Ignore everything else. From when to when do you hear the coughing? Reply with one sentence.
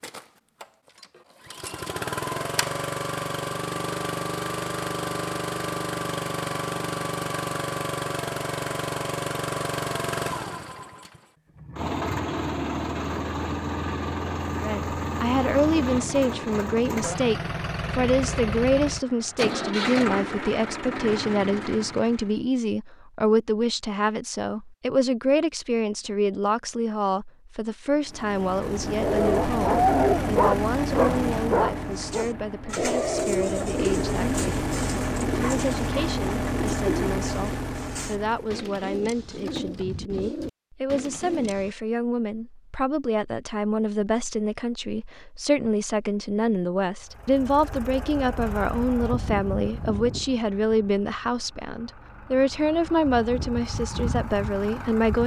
The coughing can't be heard in this clip.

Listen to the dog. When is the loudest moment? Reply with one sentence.
The loudest moment of the dog is at 30 seconds.